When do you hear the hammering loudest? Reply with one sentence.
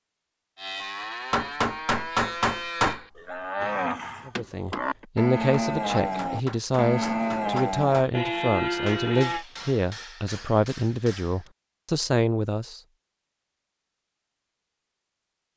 The loudest moment of the hammering is at 2 seconds.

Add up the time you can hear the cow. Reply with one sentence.
The cow can be heard for 9 seconds in total.